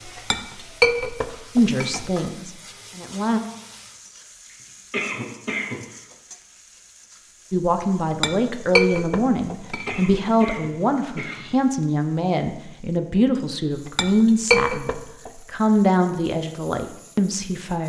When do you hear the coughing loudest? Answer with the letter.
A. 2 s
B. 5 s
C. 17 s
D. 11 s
B.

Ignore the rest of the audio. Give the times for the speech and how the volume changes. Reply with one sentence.
The speech can be heard briefly from 1.6 to 3.4 s; and from 7.5 to 17.8 s, at a steady volume.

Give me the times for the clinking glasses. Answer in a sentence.
You can hear the clinking glasses from 0.1 to 2.0 s, from 8.1 to 10.2 s and from 13.8 to 15.3 s.